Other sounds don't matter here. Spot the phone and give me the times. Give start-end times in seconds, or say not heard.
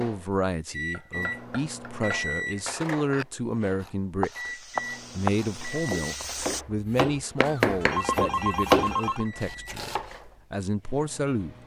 7.3-9.2.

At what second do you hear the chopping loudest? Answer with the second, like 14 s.
9 s.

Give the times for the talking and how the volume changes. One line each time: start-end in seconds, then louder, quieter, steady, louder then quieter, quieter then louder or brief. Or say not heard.
0.0-11.6 steady.